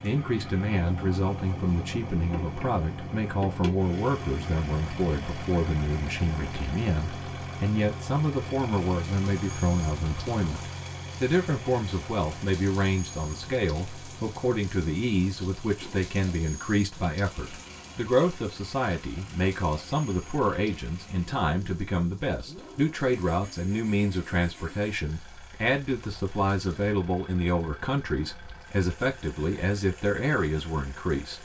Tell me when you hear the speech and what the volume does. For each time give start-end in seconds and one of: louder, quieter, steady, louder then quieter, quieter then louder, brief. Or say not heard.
0.0-31.4 steady.